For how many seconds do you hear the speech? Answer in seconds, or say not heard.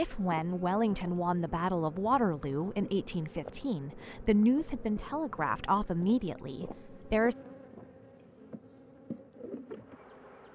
7 s.